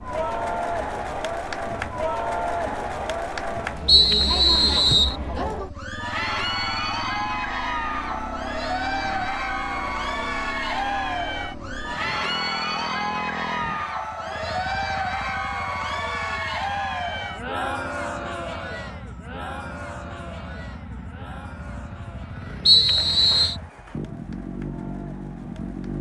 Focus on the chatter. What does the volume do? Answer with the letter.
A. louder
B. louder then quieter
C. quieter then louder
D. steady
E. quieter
E.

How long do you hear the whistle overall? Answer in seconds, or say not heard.
2 s.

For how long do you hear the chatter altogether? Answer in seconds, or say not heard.
26 s.